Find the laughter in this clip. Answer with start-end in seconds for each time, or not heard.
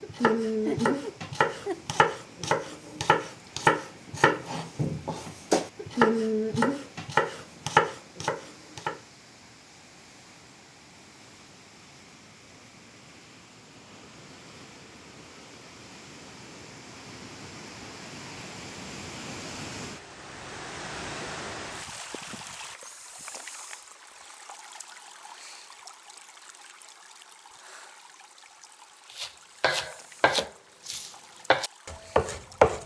0.7-2.0.